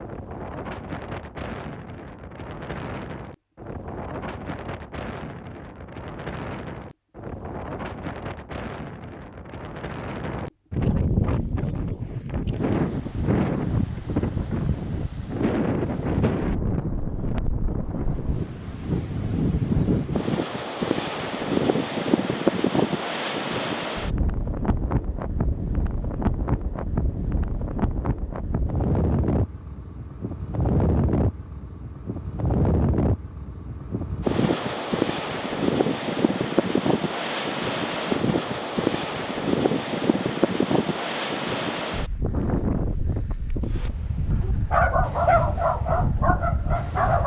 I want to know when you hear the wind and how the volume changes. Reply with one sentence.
You can hear the wind from 0.0 to 47.2 s, getting louder.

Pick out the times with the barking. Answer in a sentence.
The barking can be heard from 43.8 to 47.2 s.